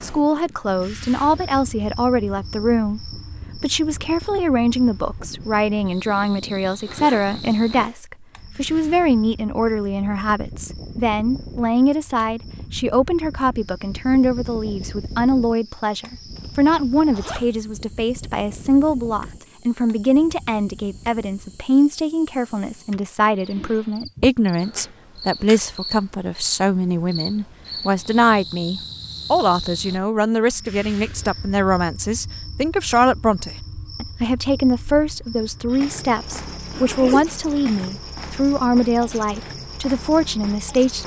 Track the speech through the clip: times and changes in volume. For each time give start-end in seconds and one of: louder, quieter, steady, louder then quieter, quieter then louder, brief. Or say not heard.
0.0-41.0 steady.